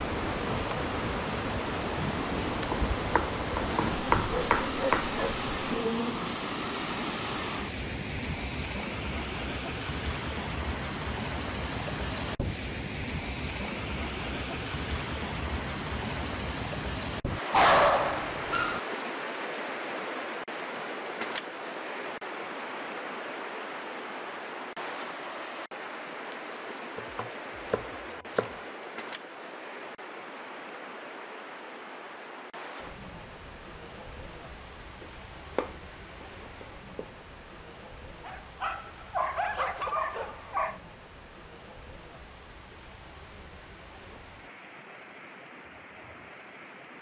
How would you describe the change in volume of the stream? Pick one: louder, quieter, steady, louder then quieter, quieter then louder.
quieter.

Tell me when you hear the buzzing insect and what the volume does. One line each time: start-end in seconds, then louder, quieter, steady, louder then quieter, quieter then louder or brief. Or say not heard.
0.0-6.4 steady.